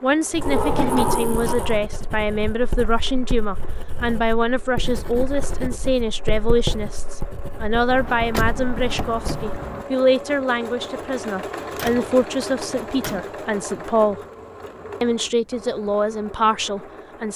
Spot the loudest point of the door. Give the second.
1 s.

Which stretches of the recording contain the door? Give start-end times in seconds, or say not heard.
0.4-1.9, 7.9-9.8, 11.8-13.3.